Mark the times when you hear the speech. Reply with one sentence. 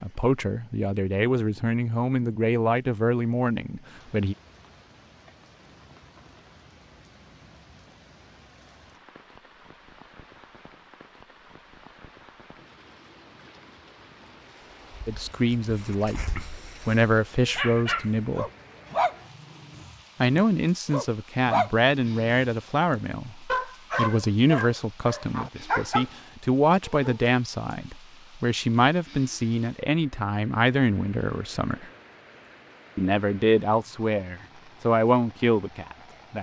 The speech can be heard from 0.0 to 4.3 s, from 15.1 to 18.5 s, from 20.2 to 31.9 s and from 33.0 to 36.3 s.